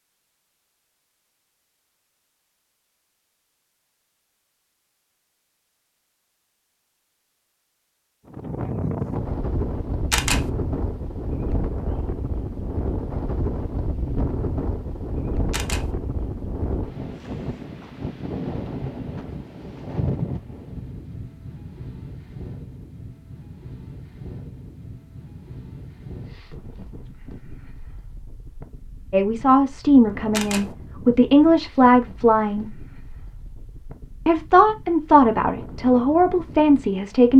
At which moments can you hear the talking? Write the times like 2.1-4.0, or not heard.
29.1-32.6, 34.2-37.3.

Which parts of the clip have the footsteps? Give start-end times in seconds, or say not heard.
not heard.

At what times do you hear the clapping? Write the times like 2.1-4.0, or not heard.
not heard.